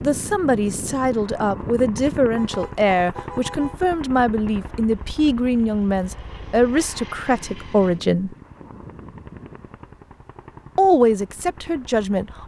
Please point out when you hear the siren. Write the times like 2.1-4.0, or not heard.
not heard.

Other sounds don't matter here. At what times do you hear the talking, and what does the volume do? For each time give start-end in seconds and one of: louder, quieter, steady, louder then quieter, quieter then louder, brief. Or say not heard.
0.0-8.3 steady
10.8-12.4 brief.